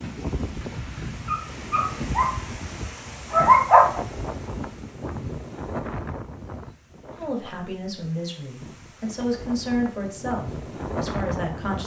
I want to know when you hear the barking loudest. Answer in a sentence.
The volume of the barking peaks at 4 seconds.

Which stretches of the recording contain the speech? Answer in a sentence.
You can hear the speech from 7.2 to 11.8 s.